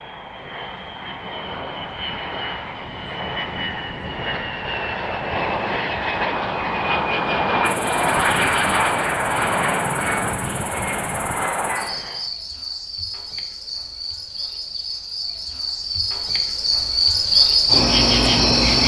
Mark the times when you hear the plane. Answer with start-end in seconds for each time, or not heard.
0.0-12.3.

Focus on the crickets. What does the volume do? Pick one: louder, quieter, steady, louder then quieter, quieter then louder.
louder.